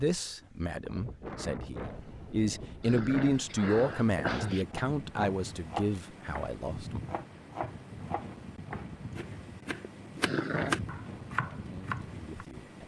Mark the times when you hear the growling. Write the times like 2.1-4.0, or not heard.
2.8-4.7, 10.2-10.8.